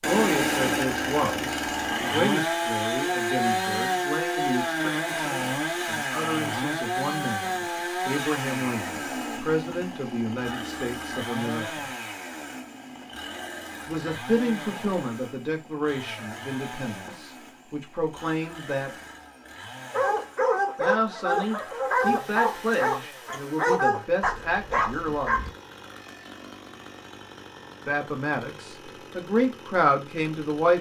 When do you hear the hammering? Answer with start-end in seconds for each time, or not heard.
not heard.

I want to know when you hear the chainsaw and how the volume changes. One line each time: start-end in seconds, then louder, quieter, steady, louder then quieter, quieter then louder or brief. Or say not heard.
0.0-30.7 quieter.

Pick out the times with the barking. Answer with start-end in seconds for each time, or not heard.
19.9-25.5.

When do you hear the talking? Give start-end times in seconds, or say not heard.
0.0-11.9, 13.8-18.9, 20.8-25.4, 27.9-30.7.